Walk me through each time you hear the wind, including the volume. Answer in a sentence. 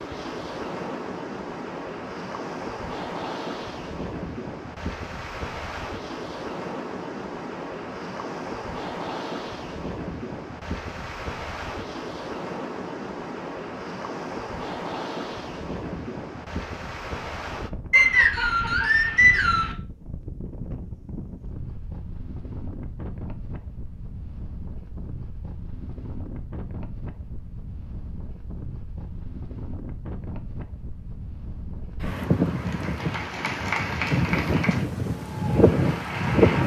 You can hear the wind from 0.0 to 36.6 s, getting quieter then louder.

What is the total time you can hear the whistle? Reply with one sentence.
The whistle can be heard for 2 seconds in total.